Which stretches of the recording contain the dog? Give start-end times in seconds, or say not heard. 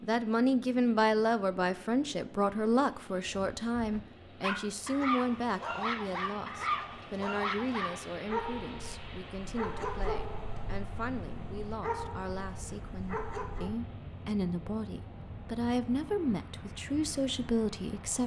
3.2-13.8.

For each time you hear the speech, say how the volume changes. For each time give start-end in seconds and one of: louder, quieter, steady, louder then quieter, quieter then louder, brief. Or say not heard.
0.0-18.2 quieter then louder.